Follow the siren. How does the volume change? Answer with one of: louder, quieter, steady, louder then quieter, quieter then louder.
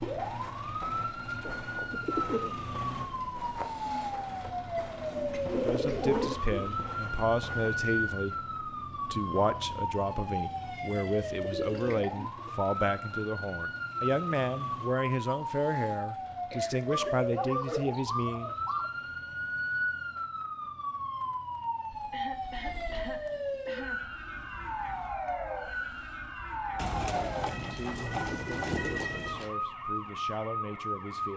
steady.